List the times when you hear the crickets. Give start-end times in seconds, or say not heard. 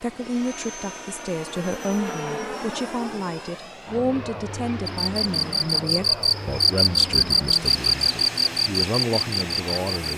4.8-10.1.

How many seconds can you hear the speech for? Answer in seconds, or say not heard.
10 s.